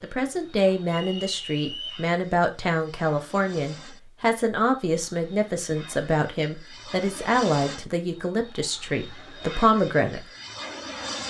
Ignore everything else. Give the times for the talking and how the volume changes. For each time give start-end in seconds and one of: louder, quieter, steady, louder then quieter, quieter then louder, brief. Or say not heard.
0.0-10.2 steady.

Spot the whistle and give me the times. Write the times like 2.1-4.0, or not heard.
0.8-2.1.